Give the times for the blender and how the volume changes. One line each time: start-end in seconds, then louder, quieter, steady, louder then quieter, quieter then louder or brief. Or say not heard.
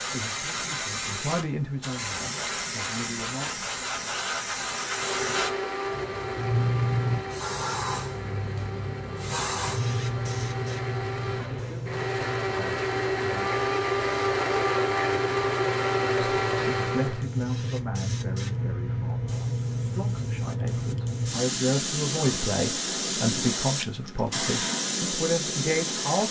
4.8-17.2 quieter then louder.